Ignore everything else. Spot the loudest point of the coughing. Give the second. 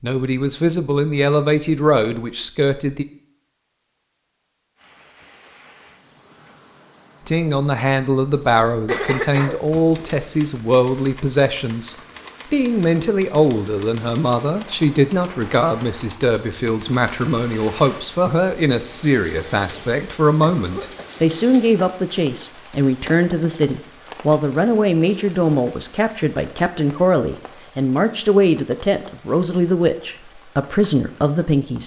9 s.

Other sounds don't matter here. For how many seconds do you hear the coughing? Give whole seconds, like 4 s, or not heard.
2 s.